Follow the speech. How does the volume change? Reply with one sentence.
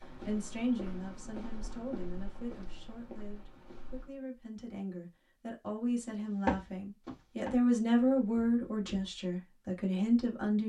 The loudness of the speech goes down, then up.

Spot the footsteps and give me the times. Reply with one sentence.
The footsteps can be heard from 0.0 to 4.2 s and from 6.0 to 9.2 s.